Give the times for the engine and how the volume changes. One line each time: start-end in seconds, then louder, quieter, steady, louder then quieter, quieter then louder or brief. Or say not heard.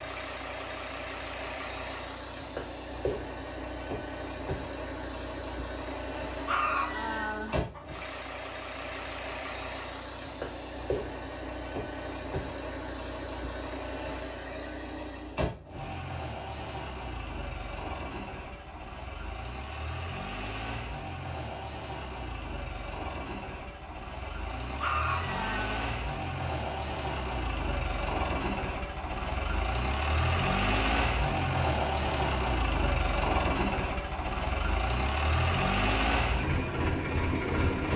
0.0-37.9 louder.